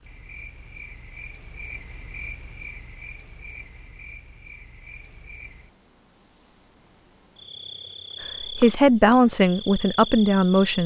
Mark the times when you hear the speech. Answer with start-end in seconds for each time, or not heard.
8.2-10.8.